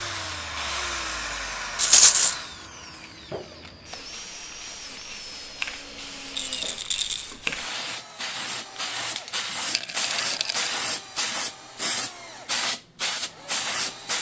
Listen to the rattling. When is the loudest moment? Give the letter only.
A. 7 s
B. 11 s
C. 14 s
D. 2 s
D.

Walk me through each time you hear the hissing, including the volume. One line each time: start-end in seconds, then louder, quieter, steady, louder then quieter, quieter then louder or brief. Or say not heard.
0.0-14.1 louder.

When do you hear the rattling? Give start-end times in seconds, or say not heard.
1.8-2.4, 6.3-7.2, 9.7-10.8.